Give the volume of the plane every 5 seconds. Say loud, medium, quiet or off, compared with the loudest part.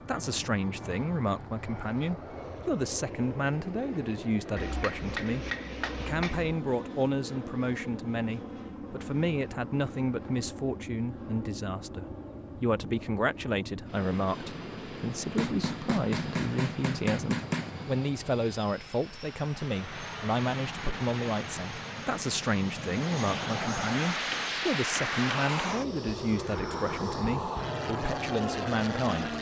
medium, medium, medium, medium, loud, loud.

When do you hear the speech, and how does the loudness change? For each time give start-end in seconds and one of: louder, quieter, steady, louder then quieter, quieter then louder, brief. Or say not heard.
0.1-29.3 steady.